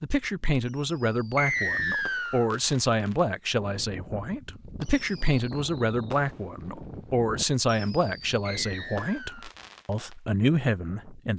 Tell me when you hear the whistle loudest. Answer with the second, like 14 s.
2 s.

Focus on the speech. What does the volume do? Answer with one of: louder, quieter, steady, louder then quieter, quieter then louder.
steady.